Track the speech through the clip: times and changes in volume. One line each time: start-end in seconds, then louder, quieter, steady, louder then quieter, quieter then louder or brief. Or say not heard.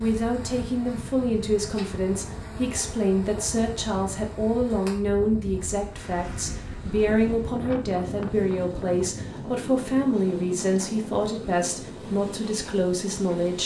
0.0-13.6 steady.